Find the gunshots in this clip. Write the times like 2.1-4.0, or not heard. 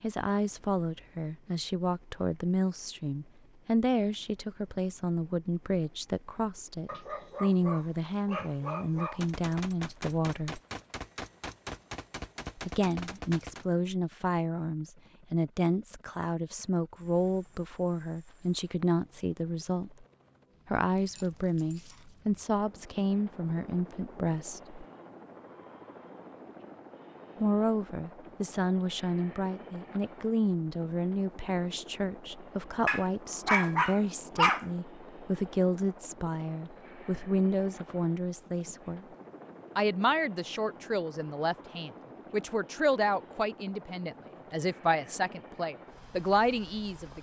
9.2-13.7.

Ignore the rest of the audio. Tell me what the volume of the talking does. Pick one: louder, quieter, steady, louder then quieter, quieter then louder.
steady.